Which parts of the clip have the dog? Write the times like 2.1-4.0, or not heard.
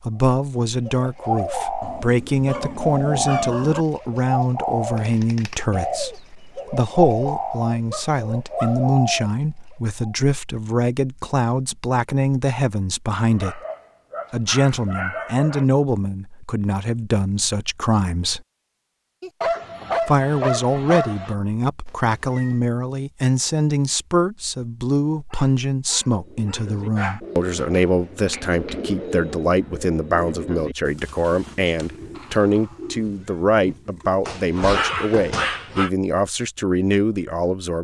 1.8-3.9, 7.9-8.8, 13.3-15.7, 19.2-21.4, 25.3-27.2, 34.2-35.9.